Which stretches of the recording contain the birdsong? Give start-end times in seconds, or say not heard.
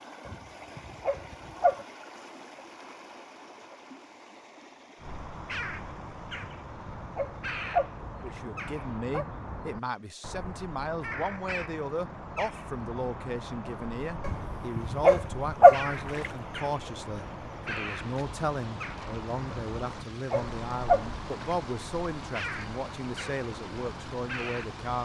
5.0-25.0.